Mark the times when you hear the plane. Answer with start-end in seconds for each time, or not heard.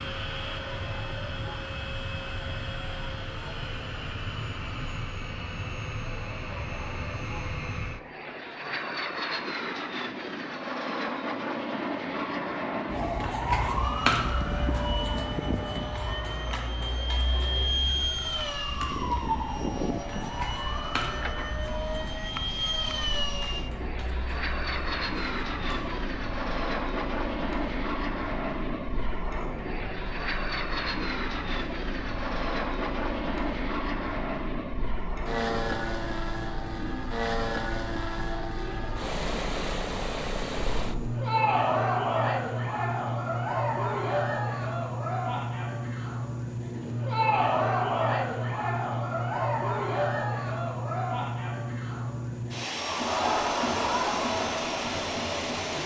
0.0-55.8.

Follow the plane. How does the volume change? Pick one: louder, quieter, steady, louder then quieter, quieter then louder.
steady.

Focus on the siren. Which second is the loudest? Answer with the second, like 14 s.
14 s.